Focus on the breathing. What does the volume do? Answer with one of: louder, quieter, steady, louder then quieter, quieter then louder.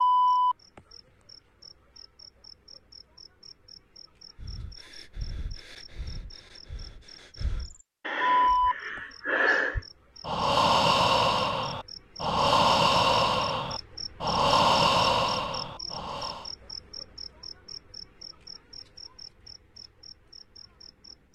louder.